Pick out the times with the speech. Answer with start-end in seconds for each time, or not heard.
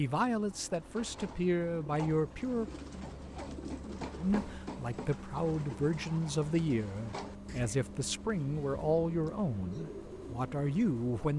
0.0-2.7, 4.2-11.3.